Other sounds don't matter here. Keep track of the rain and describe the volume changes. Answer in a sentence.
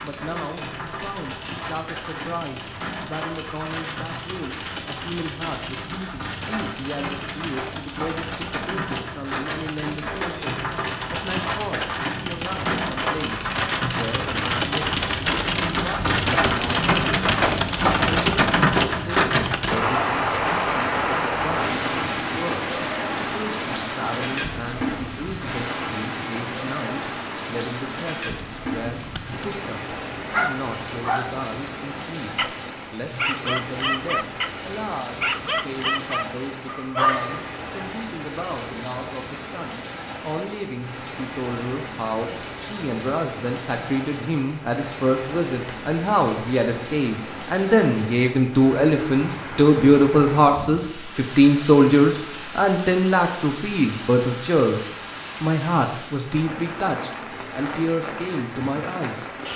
The loudness of the rain goes up, then down.